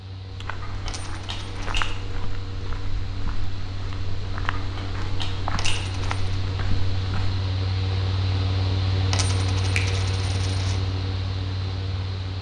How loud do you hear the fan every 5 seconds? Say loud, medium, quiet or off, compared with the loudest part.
medium, loud, loud.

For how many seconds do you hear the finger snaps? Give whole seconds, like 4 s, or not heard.
3 s.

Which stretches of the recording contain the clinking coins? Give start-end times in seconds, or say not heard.
0.8-1.9, 5.5-6.3, 9.1-10.8.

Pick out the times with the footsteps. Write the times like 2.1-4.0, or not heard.
0.3-7.4.